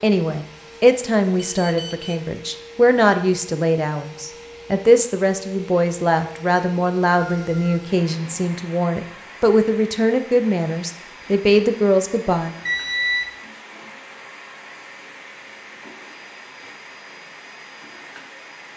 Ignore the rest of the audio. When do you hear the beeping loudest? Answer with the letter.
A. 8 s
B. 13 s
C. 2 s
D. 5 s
B.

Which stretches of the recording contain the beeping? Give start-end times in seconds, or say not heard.
1.4-2.2, 7.3-7.8, 12.7-13.3.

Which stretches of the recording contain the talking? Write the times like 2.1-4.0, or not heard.
0.0-12.6.